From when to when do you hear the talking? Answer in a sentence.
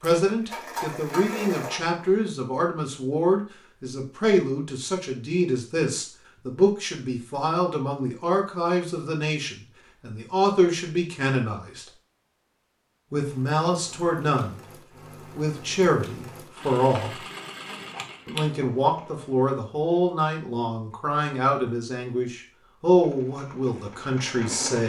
The talking can be heard from 0.0 to 11.8 s, from 13.1 to 14.6 s, from 15.2 to 17.2 s and from 18.2 to 24.8 s.